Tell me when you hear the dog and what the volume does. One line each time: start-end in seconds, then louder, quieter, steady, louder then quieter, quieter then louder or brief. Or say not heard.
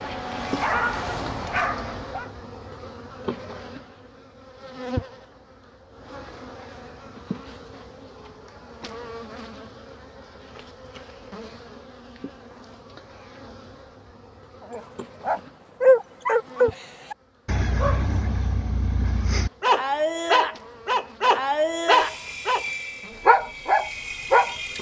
0.0-2.3 brief
14.7-22.6 quieter then louder
23.2-24.7 brief.